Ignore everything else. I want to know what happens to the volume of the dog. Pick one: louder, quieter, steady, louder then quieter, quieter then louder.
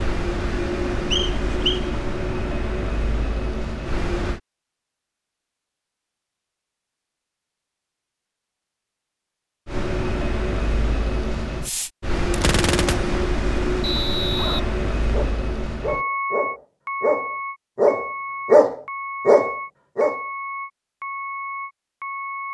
louder.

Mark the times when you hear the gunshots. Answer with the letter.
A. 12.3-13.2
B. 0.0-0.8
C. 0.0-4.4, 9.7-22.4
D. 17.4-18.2
A.